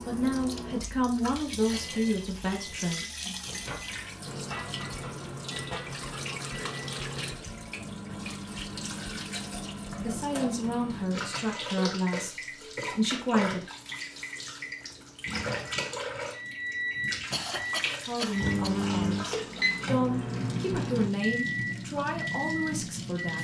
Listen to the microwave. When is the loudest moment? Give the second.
19 s.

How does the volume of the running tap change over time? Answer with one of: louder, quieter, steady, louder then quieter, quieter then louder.
steady.